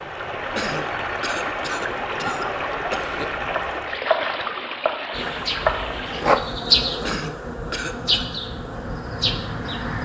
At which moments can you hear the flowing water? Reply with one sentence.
You can hear the flowing water from 0.0 to 6.5 s.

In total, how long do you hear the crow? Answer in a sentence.
You can't hear the crow here.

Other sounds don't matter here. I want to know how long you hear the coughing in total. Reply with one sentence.
You can hear the coughing for 4 seconds altogether.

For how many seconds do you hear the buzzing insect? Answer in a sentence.
You can hear the buzzing insect for 5 seconds altogether.